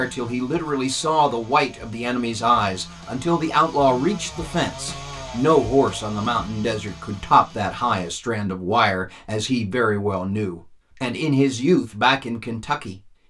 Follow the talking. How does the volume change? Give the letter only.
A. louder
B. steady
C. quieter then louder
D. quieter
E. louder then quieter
B.